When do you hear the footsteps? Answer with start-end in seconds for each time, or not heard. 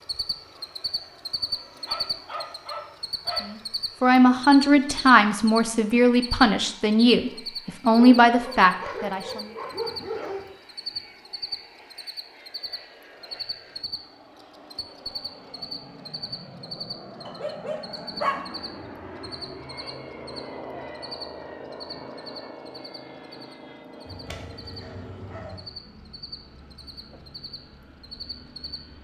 not heard.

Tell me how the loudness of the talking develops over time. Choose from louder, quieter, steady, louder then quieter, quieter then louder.
steady.